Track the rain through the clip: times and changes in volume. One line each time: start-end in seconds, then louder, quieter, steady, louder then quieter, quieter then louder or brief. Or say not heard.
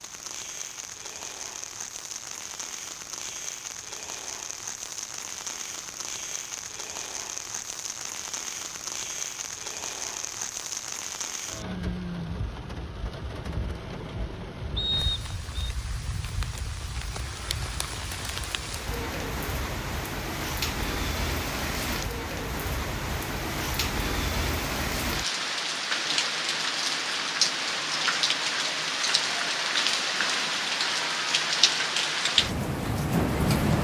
0.0-33.7 louder.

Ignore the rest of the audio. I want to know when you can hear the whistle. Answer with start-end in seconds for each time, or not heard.
14.8-15.7.